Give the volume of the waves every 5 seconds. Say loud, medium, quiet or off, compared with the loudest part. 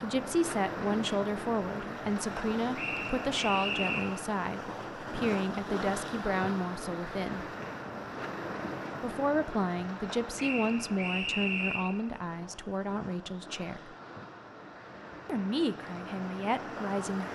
loud, loud, medium, loud.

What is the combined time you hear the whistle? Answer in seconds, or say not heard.
3 s.